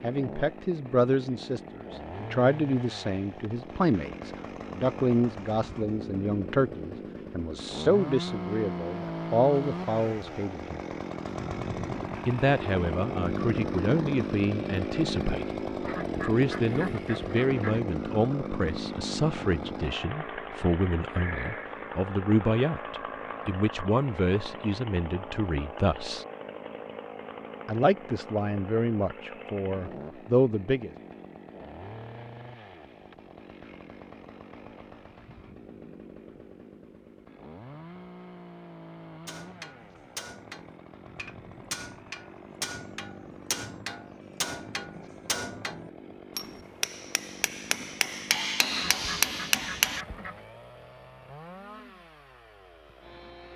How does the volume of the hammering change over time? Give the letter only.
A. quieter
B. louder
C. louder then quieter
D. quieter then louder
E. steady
B.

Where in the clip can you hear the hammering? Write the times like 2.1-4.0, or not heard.
39.2-50.0.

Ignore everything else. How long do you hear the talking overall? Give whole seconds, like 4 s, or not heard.
27 s.